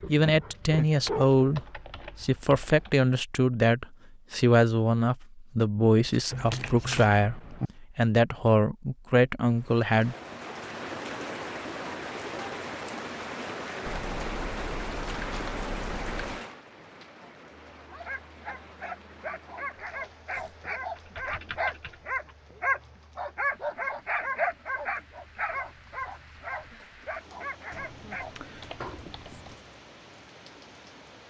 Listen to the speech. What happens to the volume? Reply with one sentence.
The volume of the speech stays about the same.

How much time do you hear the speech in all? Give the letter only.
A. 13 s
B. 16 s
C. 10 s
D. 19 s
C.